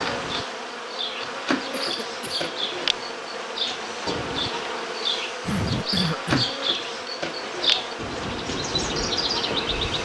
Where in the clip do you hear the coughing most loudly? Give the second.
6 s.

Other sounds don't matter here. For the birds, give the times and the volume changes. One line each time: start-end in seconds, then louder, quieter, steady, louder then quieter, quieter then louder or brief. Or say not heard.
0.0-10.0 louder.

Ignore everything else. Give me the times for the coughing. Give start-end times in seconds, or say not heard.
1.7-2.5, 5.5-6.5.